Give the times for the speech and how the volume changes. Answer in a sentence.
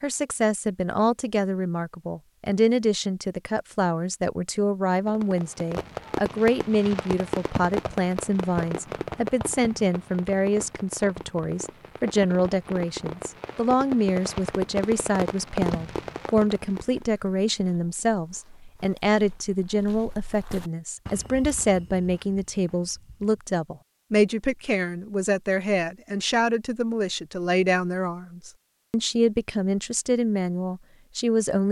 The speech can be heard from 0.0 to 31.6 s, at a steady volume.